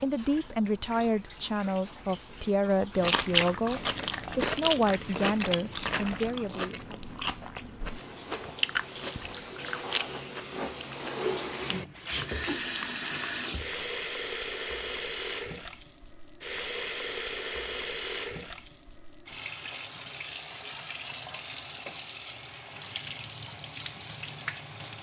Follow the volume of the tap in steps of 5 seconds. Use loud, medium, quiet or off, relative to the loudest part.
quiet, medium, loud, loud, medium.